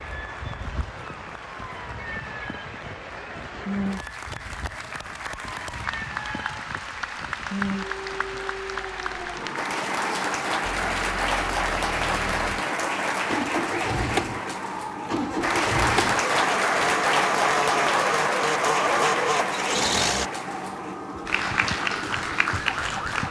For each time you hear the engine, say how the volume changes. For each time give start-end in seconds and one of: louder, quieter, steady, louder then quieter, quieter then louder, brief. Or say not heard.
10.6-20.3 louder.